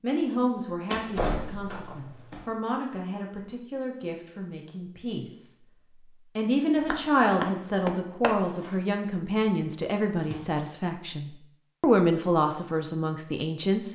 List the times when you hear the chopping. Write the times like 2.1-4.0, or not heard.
6.8-8.8.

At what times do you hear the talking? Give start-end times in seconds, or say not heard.
0.0-13.9.